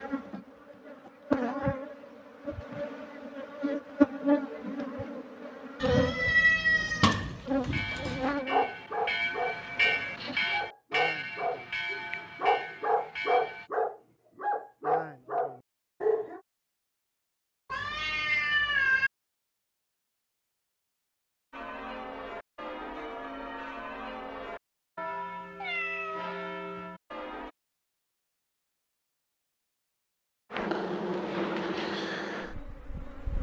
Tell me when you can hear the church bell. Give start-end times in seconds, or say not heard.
7.7-13.7, 21.5-27.5.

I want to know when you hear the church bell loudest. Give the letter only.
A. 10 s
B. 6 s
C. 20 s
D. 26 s
A.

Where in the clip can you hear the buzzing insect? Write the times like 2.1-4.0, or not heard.
0.0-10.4, 30.5-33.3.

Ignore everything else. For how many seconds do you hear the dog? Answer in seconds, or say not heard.
8 s.